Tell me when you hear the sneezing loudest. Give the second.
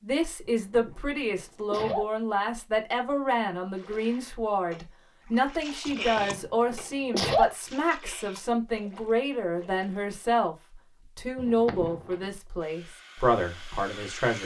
7 s.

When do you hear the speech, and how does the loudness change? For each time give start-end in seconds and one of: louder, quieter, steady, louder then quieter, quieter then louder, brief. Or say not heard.
0.0-14.4 steady.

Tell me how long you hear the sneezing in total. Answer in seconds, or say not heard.
4 s.